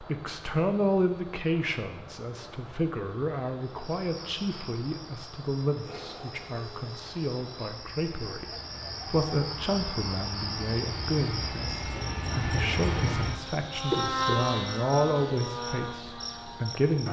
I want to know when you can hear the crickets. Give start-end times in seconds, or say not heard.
3.6-17.0.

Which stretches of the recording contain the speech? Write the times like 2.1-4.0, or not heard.
0.0-17.0.